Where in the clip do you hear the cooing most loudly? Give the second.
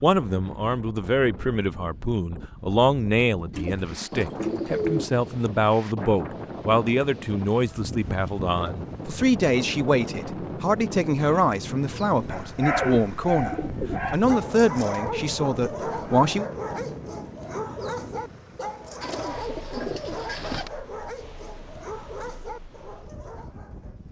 5 s.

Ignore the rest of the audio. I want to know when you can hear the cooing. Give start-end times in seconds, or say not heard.
3.5-5.5, 12.8-14.2, 19.0-20.7.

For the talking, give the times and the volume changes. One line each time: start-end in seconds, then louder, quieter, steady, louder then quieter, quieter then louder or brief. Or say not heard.
0.0-16.4 steady.